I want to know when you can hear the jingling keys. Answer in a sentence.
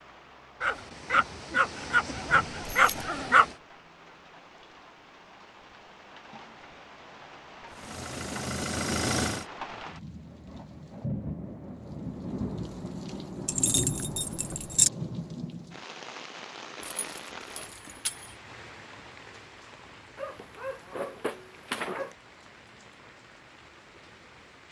The jingling keys can be heard from 2.3 to 3.0 s, from 13.4 to 14.9 s and from 16.8 to 18.4 s.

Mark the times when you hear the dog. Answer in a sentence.
The dog can be heard from 0.6 to 3.5 s and from 20.1 to 22.1 s.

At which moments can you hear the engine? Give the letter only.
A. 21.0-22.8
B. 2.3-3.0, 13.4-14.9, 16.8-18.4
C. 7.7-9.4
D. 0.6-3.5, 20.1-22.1
C.